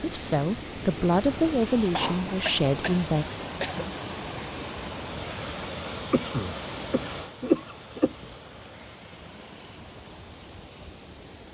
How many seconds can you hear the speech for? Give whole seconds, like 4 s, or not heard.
3 s.